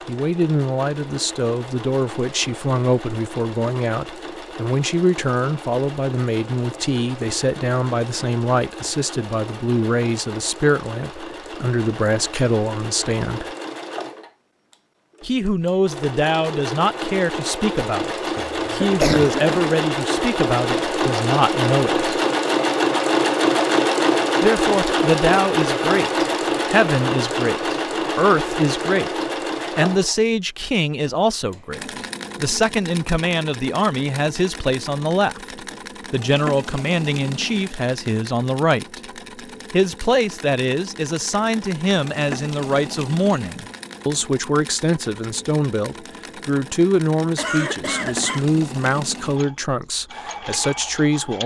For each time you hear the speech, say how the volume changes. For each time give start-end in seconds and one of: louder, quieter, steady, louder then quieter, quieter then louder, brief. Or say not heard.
0.1-13.5 steady
15.2-22.1 steady
24.4-39.0 steady
39.7-51.4 steady.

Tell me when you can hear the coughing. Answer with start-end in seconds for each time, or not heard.
18.4-19.8, 47.4-48.5.